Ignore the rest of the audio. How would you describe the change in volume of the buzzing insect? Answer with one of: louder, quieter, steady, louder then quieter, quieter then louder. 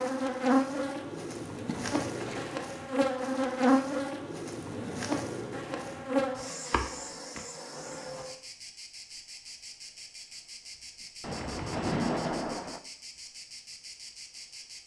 quieter.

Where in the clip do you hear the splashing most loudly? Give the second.
12 s.